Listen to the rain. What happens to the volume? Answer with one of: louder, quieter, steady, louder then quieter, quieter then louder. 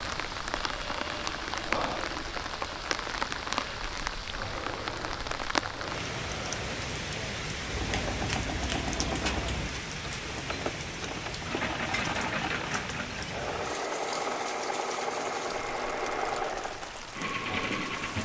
quieter.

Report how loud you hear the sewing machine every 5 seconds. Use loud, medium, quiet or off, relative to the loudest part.
medium, medium, loud, loud.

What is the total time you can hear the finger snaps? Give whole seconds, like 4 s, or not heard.
2 s.